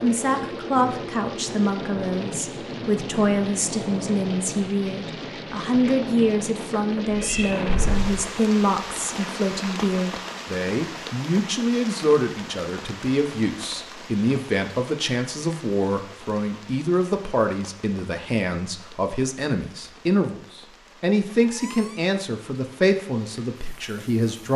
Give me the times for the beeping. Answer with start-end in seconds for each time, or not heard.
not heard.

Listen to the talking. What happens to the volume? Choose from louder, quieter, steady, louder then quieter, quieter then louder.
steady.